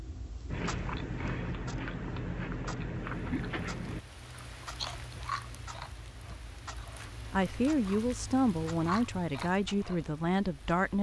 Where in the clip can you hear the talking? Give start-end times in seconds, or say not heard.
7.3-10.9.